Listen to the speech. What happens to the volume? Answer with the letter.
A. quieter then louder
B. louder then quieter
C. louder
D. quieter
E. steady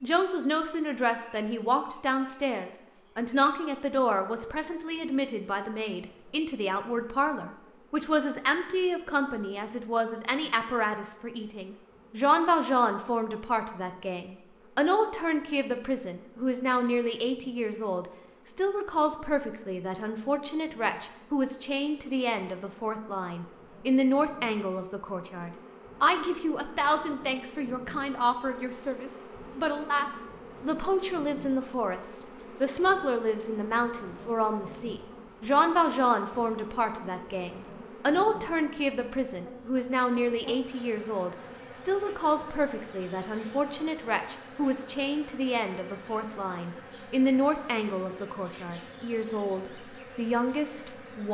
E.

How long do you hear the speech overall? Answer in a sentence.
The speech can be heard for 51 seconds in total.